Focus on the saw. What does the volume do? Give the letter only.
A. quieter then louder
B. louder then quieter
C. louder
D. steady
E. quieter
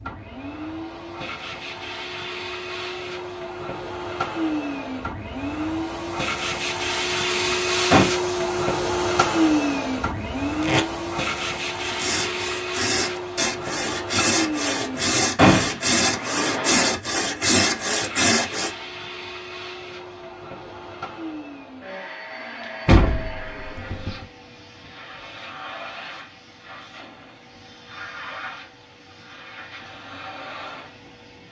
C.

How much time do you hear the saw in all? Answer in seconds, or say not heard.
7 s.